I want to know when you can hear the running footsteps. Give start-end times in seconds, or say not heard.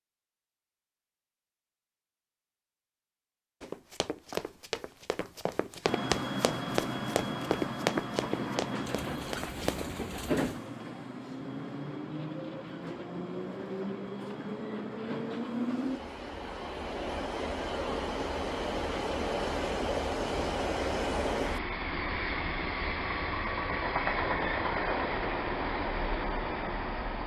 3.6-9.9.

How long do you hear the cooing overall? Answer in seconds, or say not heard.
2 s.